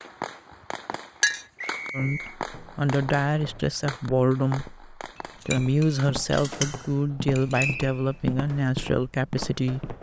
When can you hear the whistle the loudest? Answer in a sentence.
The volume of the whistle peaks at 8 seconds.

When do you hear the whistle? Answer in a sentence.
You can hear the whistle from 1.6 to 2.4 s and from 7.5 to 8.2 s.